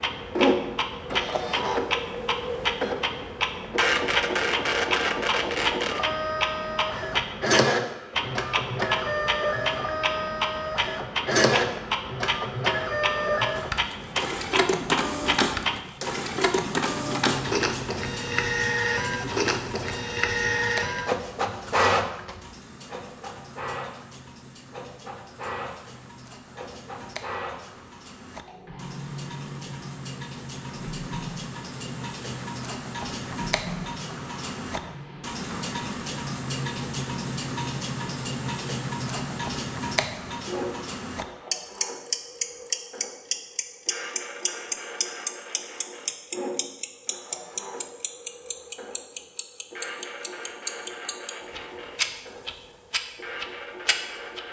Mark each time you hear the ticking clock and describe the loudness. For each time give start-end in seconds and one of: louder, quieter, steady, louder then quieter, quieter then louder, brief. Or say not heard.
0.0-54.4 quieter then louder.